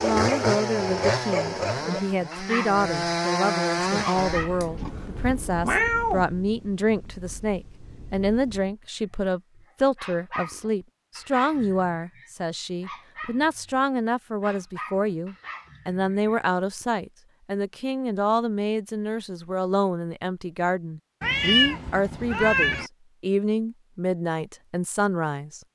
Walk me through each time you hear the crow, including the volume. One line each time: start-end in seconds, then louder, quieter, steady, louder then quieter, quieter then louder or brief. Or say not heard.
not heard.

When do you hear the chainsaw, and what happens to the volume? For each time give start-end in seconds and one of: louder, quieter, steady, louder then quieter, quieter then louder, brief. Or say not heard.
0.0-4.5 quieter then louder.